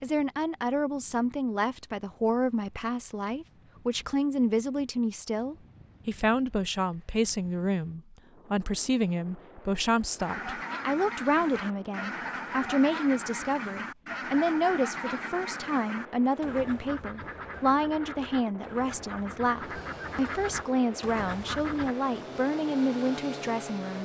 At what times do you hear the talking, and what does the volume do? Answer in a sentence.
The talking can be heard from 0.0 to 24.0 s, at a steady volume.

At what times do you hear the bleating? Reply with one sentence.
You can't hear the bleating here.